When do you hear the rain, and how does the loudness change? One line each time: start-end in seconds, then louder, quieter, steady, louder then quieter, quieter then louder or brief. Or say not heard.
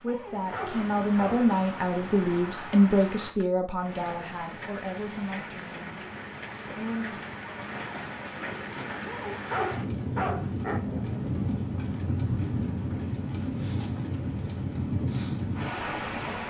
0.0-16.4 louder.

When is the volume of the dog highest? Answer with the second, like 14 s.
10 s.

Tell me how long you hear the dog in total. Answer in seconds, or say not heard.
3 s.